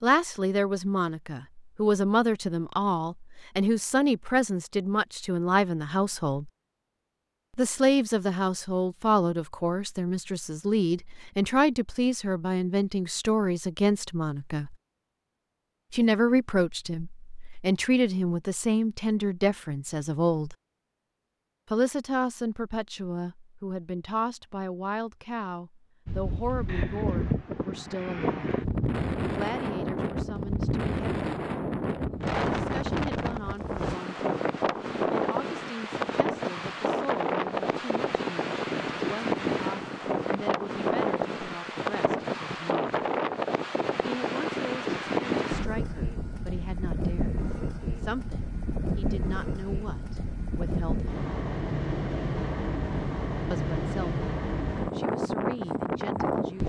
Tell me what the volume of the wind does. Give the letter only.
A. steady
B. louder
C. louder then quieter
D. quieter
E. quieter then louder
A.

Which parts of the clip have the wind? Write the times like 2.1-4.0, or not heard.
26.1-56.6.